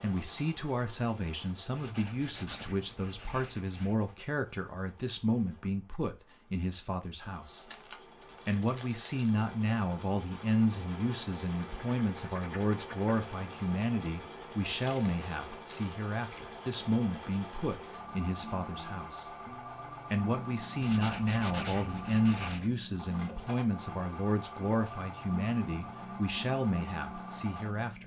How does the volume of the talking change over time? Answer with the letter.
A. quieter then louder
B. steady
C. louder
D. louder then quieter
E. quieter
B.